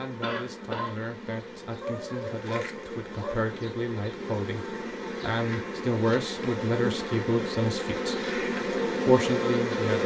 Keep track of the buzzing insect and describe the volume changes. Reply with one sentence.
The volume of the buzzing insect goes up.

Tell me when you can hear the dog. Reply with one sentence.
The dog can be heard from 1.8 to 3.5 s.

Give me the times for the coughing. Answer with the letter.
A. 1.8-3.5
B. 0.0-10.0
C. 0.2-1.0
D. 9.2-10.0
C.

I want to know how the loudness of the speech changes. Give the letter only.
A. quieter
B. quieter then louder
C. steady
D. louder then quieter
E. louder
E.